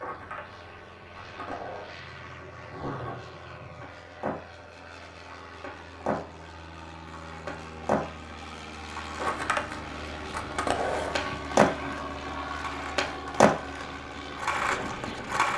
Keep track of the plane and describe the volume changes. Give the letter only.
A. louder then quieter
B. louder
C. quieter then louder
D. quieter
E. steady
B.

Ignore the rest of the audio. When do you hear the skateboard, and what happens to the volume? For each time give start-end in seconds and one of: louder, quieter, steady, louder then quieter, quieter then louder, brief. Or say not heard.
0.0-15.5 louder.